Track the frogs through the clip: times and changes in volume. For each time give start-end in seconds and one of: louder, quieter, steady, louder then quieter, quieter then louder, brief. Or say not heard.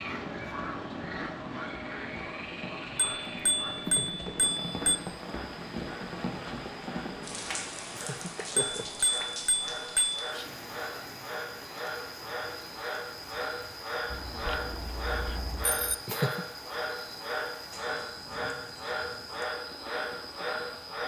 0.0-21.0 quieter then louder.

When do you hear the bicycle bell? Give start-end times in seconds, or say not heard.
3.0-5.0, 8.6-10.2, 14.1-15.9.